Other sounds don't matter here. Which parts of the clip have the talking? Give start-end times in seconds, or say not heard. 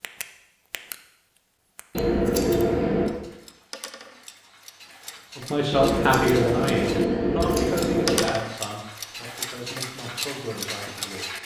5.3-11.3.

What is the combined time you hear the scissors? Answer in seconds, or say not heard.
4 s.